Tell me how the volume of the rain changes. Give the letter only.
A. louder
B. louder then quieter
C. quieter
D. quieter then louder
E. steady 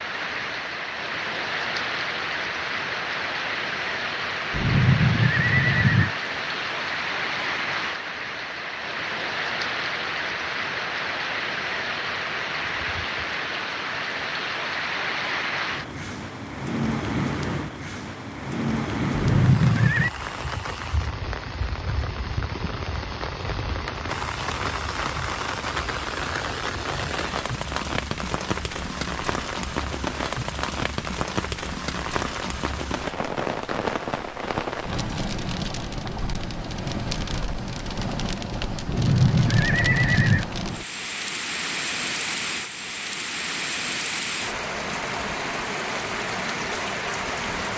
E.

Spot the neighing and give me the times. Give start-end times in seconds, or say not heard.
4.5-6.2, 19.1-20.1, 38.9-40.5.